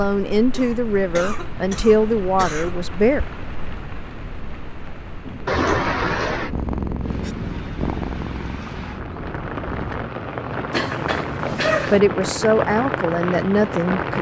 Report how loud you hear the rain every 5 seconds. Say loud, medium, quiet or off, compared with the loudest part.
medium, medium, loud.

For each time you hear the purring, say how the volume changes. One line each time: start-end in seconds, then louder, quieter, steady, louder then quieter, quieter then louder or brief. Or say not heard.
5.2-10.1 louder then quieter.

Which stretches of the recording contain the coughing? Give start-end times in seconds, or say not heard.
0.6-2.8, 5.5-6.5, 10.7-12.0.